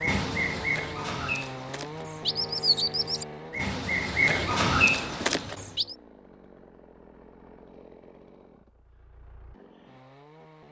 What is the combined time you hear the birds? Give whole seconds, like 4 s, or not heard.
6 s.